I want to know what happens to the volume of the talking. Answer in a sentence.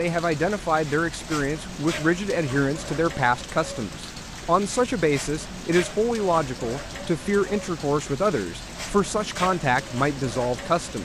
The volume of the talking stays about the same.